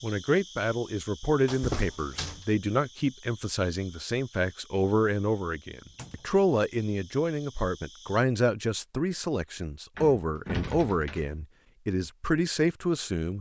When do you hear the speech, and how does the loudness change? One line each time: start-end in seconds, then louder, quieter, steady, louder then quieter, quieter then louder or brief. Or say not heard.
0.0-13.3 steady.